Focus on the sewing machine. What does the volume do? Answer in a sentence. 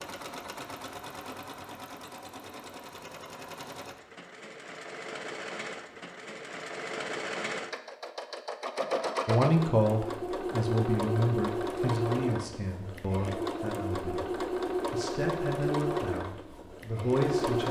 The volume of the sewing machine goes up.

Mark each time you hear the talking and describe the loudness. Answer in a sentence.
You can hear the talking from 9.2 to 14.3 s, getting quieter; and briefly from 14.9 to 17.6 s.